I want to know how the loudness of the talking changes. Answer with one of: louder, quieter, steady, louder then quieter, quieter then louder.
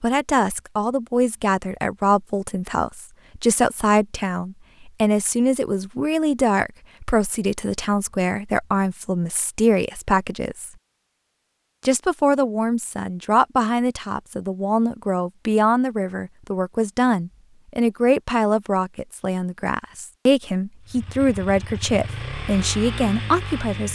steady.